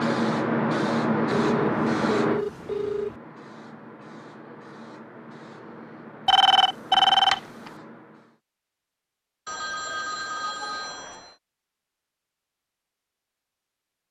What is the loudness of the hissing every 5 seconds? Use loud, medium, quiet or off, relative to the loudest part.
loud, quiet, off.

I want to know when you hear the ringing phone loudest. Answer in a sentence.
The loudest moment of the ringing phone is at 7 seconds.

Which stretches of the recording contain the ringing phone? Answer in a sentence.
The ringing phone can be heard from 1.4 to 3.2 s, from 6.2 to 7.4 s and from 9.4 to 11.3 s.